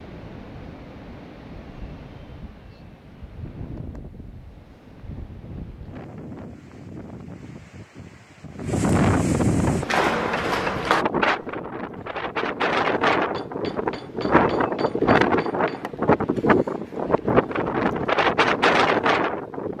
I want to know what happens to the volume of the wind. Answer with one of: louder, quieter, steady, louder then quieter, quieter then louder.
louder.